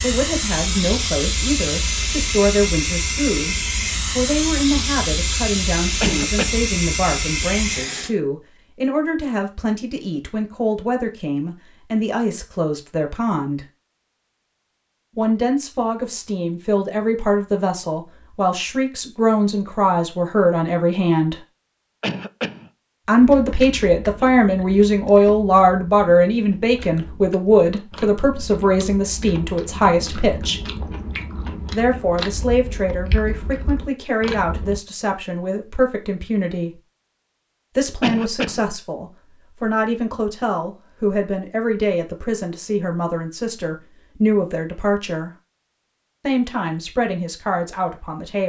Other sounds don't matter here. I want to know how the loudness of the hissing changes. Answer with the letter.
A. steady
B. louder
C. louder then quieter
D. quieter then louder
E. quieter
A.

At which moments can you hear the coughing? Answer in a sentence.
You can hear the coughing from 6.0 to 6.7 s, from 22.0 to 22.7 s and from 38.0 to 38.7 s.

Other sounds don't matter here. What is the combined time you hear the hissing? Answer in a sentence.
The hissing can be heard for 8 seconds in total.